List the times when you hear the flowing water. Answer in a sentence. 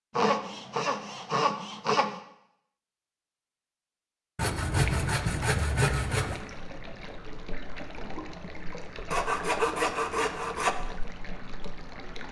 You can hear the flowing water from 4.8 to 12.2 s.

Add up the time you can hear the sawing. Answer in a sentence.
You can hear the sawing for 6 seconds altogether.